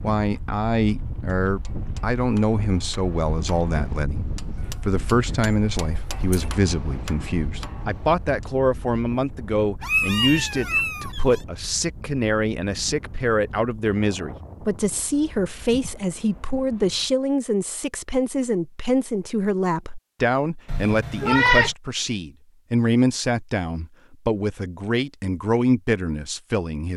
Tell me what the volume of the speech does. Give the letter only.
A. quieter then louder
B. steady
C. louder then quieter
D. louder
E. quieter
B.